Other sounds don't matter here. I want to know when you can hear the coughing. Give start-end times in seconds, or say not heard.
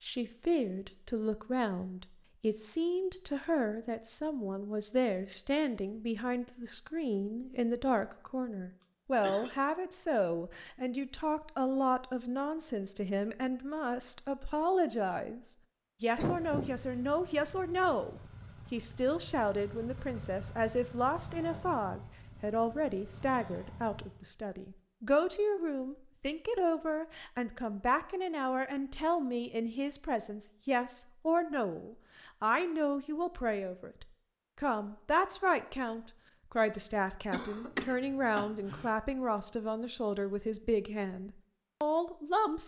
8.8-9.5, 16.1-16.8, 37.3-38.9.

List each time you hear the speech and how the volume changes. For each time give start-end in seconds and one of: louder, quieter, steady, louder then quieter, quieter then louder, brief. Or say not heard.
0.0-42.6 steady.